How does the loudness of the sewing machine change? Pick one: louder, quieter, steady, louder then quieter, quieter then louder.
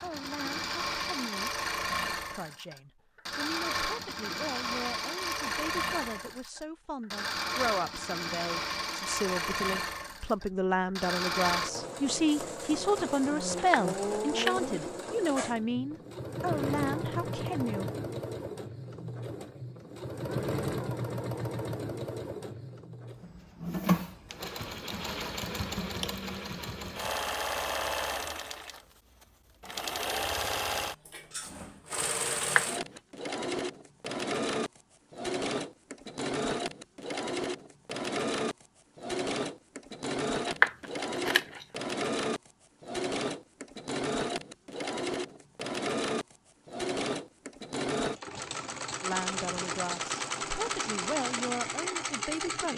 steady.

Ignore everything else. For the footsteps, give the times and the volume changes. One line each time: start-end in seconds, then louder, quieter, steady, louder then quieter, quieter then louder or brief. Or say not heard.
not heard.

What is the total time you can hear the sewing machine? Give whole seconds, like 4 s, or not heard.
53 s.